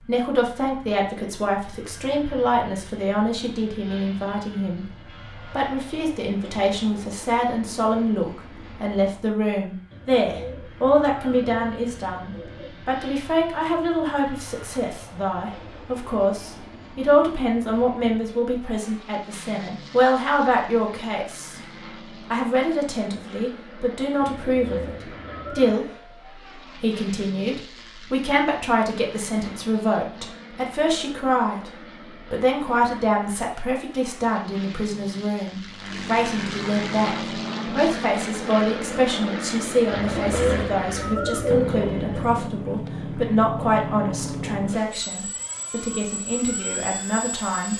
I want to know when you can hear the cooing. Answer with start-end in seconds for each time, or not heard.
9.9-12.7, 24.2-25.8, 39.9-42.5.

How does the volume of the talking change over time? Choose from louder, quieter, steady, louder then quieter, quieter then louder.
steady.